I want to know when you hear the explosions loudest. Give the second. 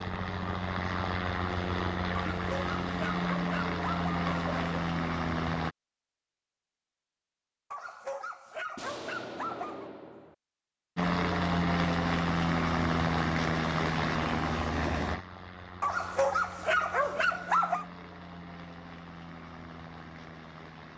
9 s.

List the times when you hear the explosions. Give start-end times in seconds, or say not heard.
8.8-10.3.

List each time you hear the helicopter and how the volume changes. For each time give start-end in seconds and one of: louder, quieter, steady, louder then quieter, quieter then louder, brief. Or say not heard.
0.0-5.8 steady
10.9-20.9 quieter.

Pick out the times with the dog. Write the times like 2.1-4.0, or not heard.
2.1-4.8, 7.7-9.9, 15.8-17.9.